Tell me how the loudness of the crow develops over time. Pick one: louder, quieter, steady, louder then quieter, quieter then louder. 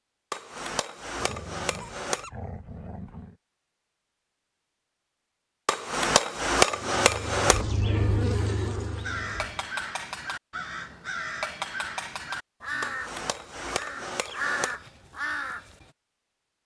quieter then louder.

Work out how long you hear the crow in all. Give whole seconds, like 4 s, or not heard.
7 s.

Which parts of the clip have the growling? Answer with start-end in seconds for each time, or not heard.
1.1-3.4.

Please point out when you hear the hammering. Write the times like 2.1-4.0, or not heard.
0.3-2.2, 5.7-7.7, 12.8-14.8.